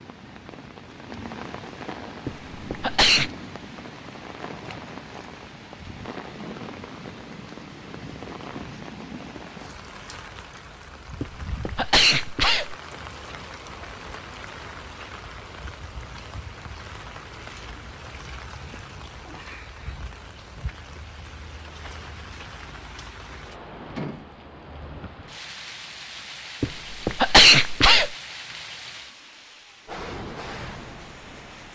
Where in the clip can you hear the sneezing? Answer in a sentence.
The sneezing can be heard from 2.2 to 3.3 s, from 11.2 to 12.8 s and from 26.6 to 28.1 s.